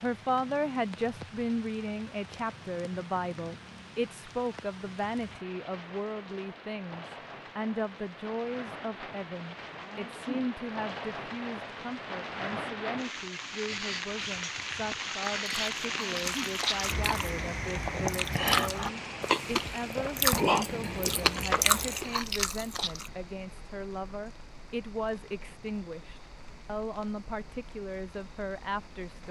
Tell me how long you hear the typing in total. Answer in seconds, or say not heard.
not heard.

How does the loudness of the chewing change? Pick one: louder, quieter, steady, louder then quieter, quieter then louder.
louder.